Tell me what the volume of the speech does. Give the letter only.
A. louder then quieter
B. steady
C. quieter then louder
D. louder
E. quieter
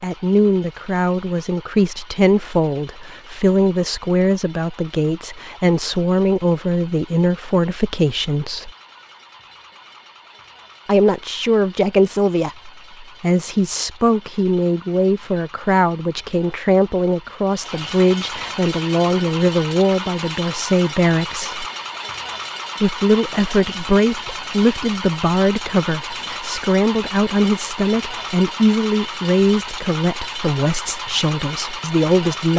B.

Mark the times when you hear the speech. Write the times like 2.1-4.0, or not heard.
0.0-8.7, 10.8-21.6, 22.8-32.5.